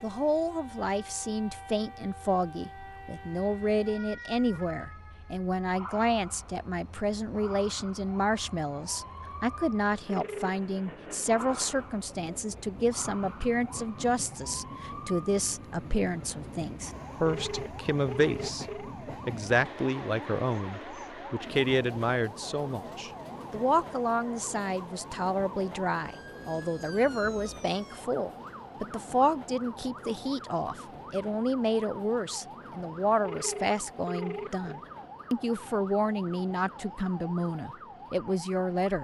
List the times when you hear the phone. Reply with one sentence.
You can hear the phone from 10.1 to 10.6 s, from 17.2 to 18.9 s and from 33.2 to 34.8 s.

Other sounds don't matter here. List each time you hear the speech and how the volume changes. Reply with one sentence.
You can hear the speech from 0.0 to 38.9 s, at a steady volume.